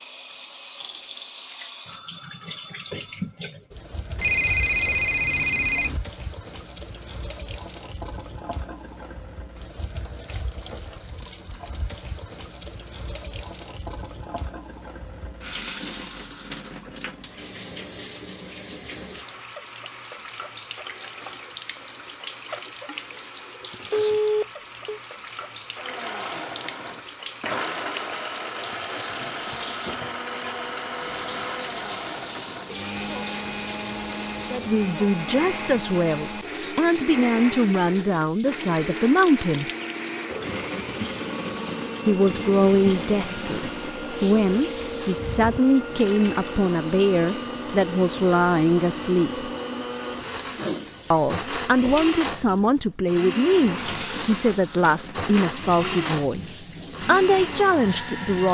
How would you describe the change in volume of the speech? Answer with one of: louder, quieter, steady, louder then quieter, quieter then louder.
steady.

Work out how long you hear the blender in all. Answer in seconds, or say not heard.
33 s.